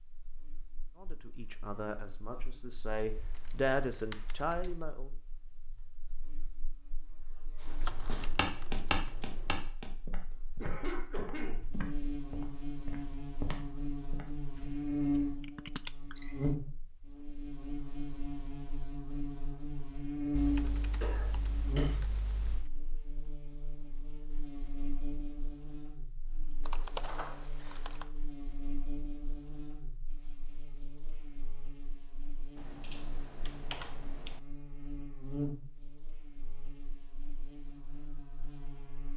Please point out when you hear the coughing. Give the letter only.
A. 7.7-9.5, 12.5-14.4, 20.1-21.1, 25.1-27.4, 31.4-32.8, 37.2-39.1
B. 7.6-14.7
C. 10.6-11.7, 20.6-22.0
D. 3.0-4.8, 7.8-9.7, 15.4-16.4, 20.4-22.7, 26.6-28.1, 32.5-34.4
C.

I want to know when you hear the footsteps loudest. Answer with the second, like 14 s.
9 s.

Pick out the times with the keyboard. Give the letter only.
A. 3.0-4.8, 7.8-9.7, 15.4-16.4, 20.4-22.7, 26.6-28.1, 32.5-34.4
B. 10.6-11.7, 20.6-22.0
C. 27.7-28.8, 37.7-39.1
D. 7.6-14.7
A.